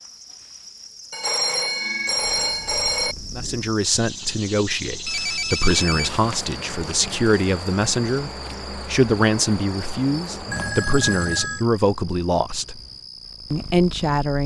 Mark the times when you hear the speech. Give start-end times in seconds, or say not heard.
3.3-12.8, 13.5-14.4.